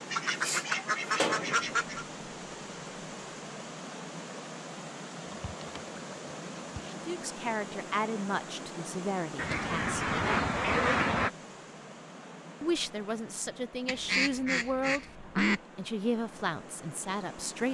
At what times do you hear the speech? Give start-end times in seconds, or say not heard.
7.0-10.2, 12.6-15.1, 15.8-17.6.